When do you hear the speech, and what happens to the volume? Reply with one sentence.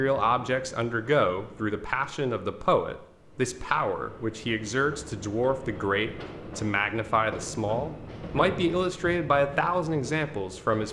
You can hear the speech from 0.0 to 10.8 s, at a steady volume.